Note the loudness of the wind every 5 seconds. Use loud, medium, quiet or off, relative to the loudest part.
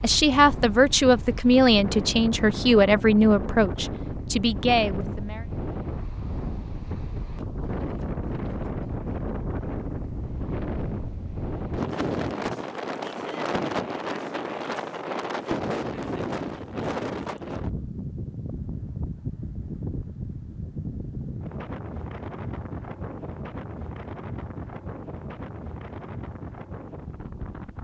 loud, loud, loud, loud, medium, medium.